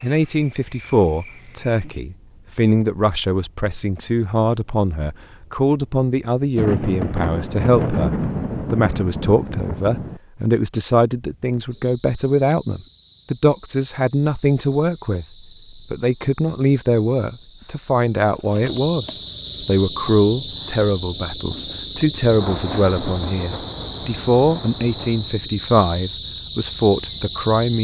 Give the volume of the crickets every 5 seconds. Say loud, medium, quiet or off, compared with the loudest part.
quiet, quiet, quiet, medium, loud, loud.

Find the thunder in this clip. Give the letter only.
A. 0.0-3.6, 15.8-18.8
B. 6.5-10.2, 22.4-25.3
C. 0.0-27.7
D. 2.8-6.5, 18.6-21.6
B.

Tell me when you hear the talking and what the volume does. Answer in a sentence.
The talking can be heard from 0.0 to 27.7 s, at a steady volume.